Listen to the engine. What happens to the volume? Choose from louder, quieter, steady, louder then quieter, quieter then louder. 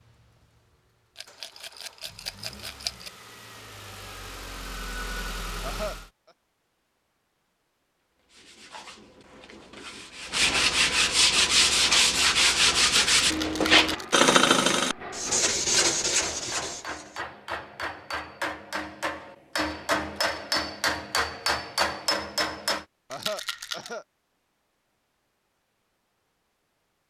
louder.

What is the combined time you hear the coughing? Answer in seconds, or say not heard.
2 s.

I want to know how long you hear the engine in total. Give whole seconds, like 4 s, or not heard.
6 s.